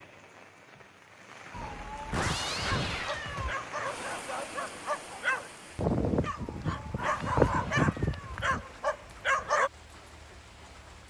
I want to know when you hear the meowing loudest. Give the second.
2 s.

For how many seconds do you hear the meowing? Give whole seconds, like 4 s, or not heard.
4 s.